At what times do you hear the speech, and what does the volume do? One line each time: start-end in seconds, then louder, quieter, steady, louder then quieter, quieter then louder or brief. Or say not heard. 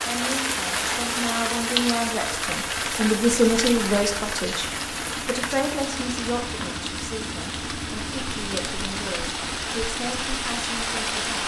0.1-11.4 louder then quieter.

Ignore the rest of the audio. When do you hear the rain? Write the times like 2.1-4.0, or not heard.
0.0-11.4.